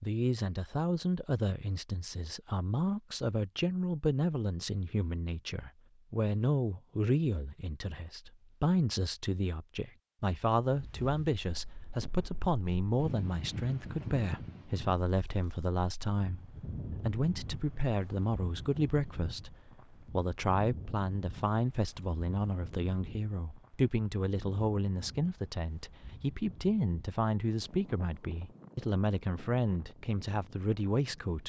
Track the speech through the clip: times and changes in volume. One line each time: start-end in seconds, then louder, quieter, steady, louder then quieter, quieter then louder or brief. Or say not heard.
0.0-31.4 steady.